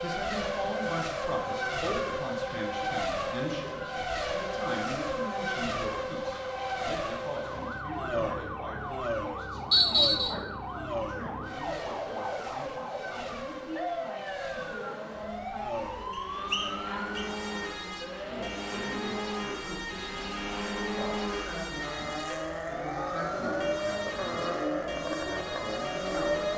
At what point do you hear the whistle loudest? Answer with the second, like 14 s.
10 s.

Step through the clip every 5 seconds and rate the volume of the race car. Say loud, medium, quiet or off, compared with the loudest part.
loud, loud, medium, medium, loud, loud.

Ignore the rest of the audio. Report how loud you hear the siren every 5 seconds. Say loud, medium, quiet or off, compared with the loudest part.
medium, loud, loud, loud, loud, loud.